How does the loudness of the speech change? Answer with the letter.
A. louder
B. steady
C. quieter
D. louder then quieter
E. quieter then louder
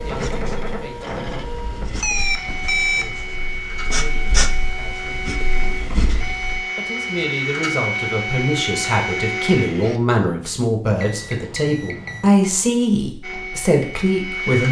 A.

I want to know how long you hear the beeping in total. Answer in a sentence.
The beeping can be heard for 3 seconds in total.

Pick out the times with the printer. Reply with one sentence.
You can hear the printer from 0.0 to 10.0 s and from 13.2 to 14.6 s.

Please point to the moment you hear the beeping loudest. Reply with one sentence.
The volume of the beeping peaks at 3 seconds.